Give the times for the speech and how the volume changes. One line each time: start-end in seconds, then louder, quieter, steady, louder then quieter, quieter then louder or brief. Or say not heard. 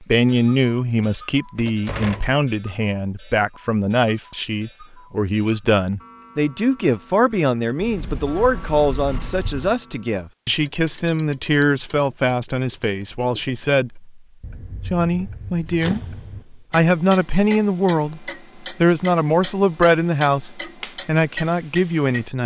0.0-22.4 steady.